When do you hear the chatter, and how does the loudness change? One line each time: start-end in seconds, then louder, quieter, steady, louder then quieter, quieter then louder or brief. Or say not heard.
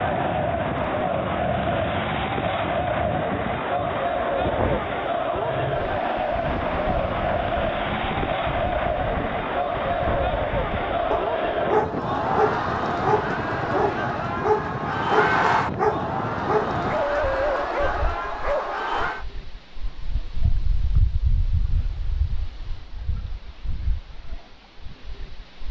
0.0-19.2 steady.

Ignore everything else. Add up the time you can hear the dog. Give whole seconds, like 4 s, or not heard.
8 s.